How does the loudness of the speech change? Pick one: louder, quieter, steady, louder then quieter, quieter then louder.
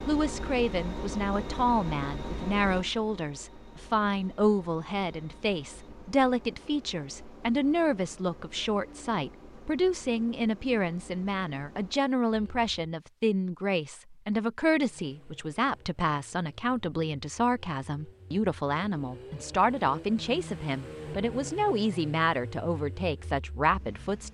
steady.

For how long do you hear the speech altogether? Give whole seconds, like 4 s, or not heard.
24 s.